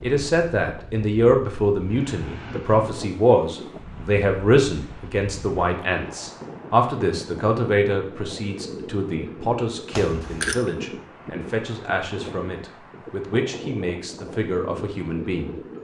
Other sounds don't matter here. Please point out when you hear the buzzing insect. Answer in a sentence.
You can't hear the buzzing insect here.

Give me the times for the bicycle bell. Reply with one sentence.
The bicycle bell can be heard from 9.9 to 10.7 s.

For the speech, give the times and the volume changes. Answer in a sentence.
The speech can be heard from 0.0 to 15.6 s, getting quieter.